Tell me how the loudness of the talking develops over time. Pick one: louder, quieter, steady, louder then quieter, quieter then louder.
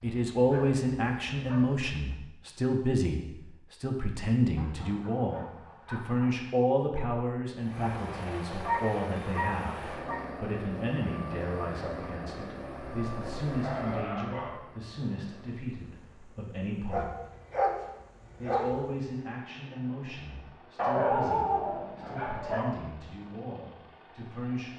quieter.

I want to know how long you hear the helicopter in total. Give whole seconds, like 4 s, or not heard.
17 s.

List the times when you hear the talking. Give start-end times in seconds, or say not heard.
0.0-17.1, 18.4-24.7.